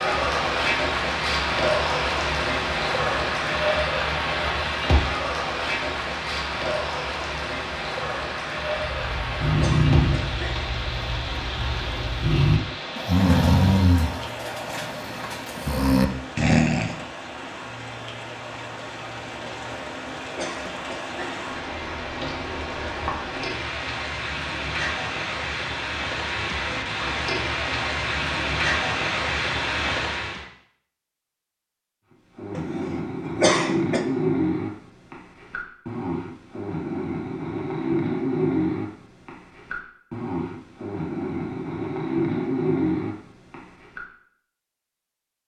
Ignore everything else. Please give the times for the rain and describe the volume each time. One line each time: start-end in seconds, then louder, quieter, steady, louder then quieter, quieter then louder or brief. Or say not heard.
0.0-30.4 quieter then louder.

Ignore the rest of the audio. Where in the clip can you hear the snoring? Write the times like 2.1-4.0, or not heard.
8.8-17.0, 32.4-44.0.